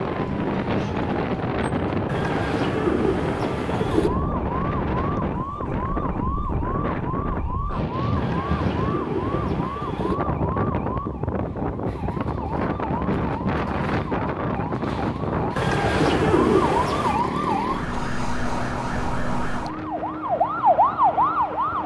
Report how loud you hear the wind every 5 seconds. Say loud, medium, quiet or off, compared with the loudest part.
loud, loud, loud, loud, quiet.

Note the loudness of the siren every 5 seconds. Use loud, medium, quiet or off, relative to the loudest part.
quiet, quiet, quiet, medium, loud.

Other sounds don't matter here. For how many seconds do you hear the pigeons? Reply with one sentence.
You can hear the pigeons for 6 seconds altogether.